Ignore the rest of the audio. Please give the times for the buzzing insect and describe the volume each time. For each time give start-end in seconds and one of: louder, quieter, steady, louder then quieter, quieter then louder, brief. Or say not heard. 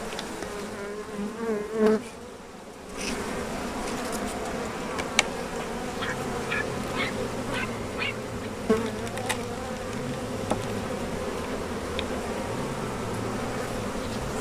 0.0-14.3 steady.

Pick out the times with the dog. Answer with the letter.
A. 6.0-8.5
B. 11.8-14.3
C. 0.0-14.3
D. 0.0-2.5
A.